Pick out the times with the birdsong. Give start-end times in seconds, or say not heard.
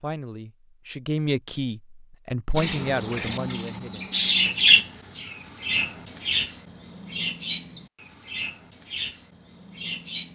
2.5-10.3.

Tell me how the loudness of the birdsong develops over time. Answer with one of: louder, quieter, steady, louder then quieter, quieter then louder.
louder then quieter.